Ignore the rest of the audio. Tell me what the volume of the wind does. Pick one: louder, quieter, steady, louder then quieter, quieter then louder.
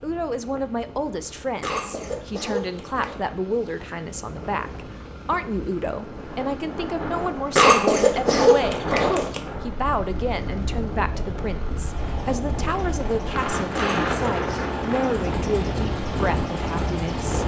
louder.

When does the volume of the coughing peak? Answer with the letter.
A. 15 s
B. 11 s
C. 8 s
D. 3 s
C.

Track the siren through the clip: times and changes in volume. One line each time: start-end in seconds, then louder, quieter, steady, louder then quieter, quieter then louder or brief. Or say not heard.
not heard.